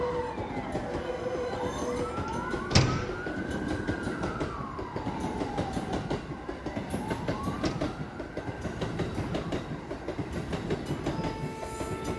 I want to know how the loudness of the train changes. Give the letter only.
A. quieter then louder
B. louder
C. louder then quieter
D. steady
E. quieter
D.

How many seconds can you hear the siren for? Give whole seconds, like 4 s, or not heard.
12 s.